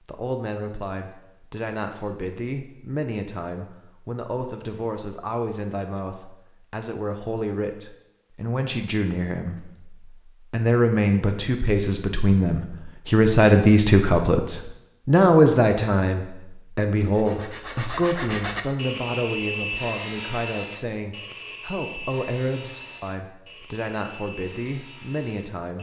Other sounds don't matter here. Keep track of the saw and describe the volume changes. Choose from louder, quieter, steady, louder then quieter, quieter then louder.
quieter.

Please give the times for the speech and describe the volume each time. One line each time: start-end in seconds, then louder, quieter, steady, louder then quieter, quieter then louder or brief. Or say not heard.
0.1-25.7 louder then quieter.